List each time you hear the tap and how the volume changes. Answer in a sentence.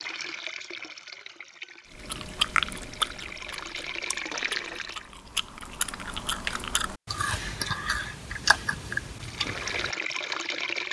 The tap can be heard from 0.0 to 5.1 s, getting quieter then louder; and briefly from 9.2 to 10.8 s.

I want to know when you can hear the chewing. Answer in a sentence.
You can hear the chewing from 1.9 to 10.2 s.